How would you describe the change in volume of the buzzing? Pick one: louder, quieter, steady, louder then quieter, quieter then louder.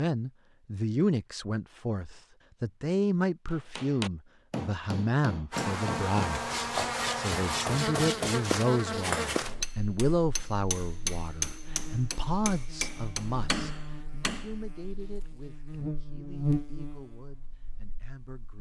quieter then louder.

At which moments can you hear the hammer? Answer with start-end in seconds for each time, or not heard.
3.5-14.6.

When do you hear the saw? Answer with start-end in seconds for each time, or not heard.
6.3-8.7.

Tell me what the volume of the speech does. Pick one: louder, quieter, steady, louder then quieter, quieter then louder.
quieter.